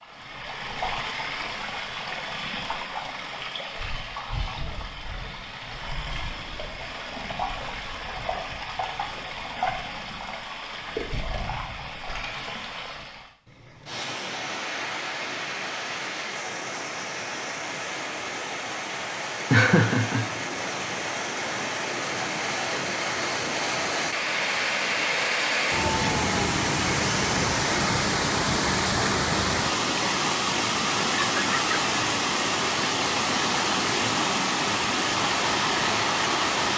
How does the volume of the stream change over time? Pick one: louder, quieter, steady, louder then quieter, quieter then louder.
louder.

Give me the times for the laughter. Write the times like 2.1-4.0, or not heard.
19.5-20.2.